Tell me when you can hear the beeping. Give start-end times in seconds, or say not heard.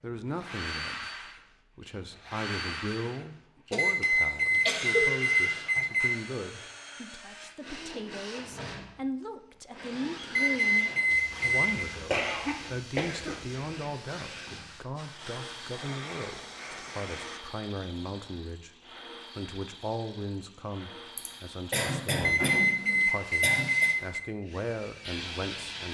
3.8-6.2, 10.3-11.7, 22.2-24.2.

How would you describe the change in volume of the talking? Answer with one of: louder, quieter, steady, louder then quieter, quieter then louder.
steady.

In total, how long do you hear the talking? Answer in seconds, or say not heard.
25 s.